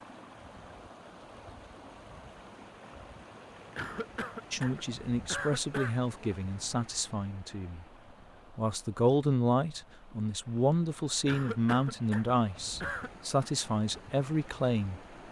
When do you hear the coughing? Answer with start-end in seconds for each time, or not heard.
3.8-6.0, 11.2-13.1.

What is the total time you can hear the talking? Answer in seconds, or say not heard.
10 s.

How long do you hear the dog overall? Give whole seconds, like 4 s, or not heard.
not heard.